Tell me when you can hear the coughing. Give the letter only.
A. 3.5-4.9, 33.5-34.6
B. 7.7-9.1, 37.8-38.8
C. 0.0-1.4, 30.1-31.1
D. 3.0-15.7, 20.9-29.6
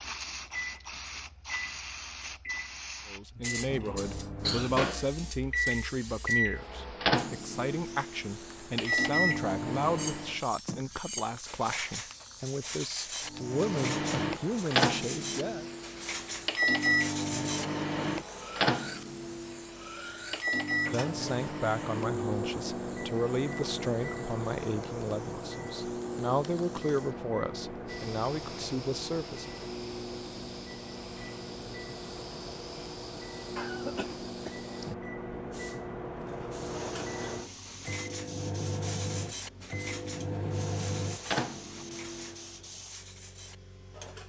A.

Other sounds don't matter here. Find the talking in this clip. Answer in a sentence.
You can hear the talking from 3.0 to 15.7 s and from 20.9 to 29.6 s.